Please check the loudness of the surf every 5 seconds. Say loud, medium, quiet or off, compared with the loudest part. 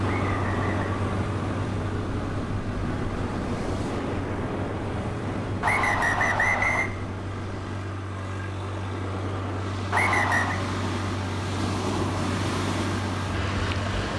loud, medium, loud.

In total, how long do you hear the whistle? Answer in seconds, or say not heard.
3 s.